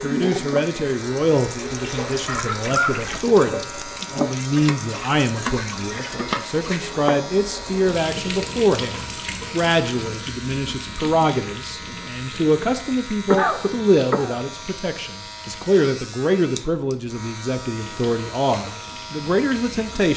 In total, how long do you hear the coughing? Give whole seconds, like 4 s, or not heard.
2 s.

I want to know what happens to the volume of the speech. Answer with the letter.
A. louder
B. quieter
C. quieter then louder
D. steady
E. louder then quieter
D.